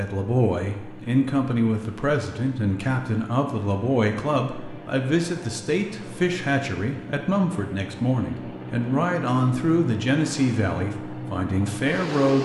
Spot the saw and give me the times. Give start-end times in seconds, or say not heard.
not heard.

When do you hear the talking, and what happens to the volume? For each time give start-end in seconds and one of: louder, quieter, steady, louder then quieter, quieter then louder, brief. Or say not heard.
0.0-12.4 steady.